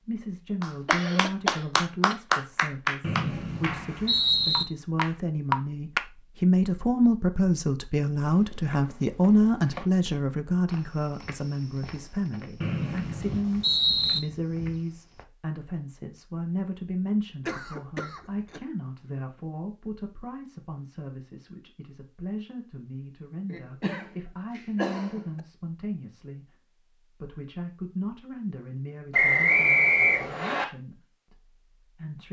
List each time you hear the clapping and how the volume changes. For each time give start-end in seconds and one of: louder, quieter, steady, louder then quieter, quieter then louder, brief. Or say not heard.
0.6-6.0 quieter then louder.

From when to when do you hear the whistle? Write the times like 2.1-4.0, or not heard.
3.0-4.7, 12.6-14.2, 29.1-30.6.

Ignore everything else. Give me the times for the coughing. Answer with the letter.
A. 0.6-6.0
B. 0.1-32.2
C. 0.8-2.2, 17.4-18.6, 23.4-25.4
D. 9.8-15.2
C.